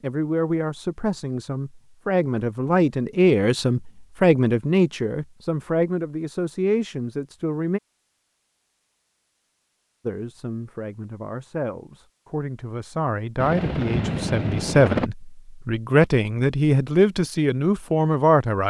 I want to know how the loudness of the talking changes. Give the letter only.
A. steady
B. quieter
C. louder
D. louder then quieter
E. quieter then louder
E.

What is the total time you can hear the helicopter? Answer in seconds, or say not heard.
2 s.